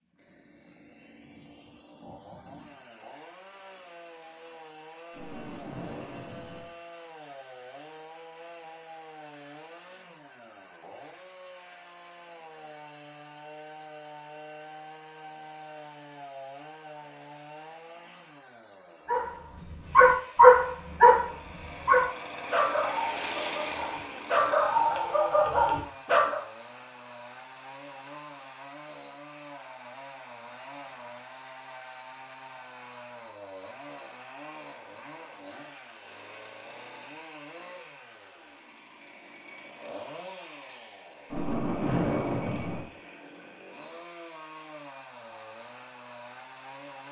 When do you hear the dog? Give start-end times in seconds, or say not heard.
19.1-26.4.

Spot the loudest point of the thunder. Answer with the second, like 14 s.
42 s.